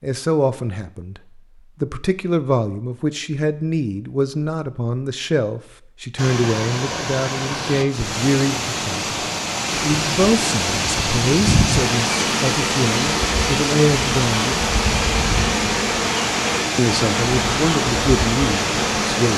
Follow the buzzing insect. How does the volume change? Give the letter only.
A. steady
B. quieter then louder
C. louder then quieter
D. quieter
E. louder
A.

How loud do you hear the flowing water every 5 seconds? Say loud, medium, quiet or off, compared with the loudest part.
off, loud, loud, loud.